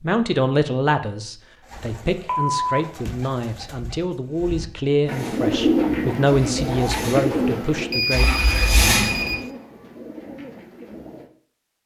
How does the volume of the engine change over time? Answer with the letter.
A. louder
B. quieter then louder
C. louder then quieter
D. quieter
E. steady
A.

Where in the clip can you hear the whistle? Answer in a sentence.
The whistle can't be heard in this clip.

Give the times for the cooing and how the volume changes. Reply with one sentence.
The cooing can be heard from 1.6 to 11.3 s, getting louder then quieter.